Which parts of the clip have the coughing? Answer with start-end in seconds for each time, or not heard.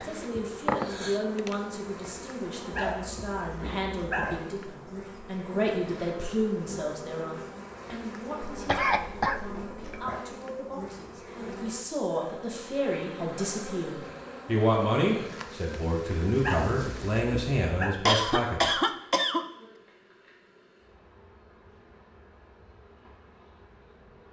0.3-1.6, 8.4-10.1, 18.1-19.4.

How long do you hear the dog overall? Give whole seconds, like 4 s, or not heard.
3 s.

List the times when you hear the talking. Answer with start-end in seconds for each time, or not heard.
0.0-18.8.